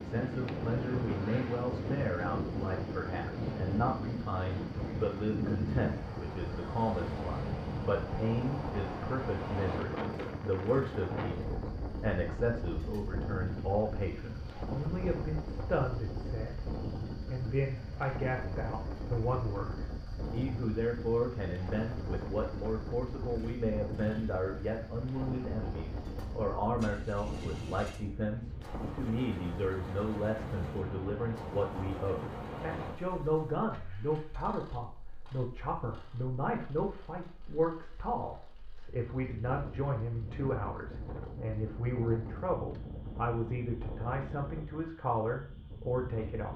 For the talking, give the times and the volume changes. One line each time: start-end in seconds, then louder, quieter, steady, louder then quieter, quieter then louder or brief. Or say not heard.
0.0-46.5 steady.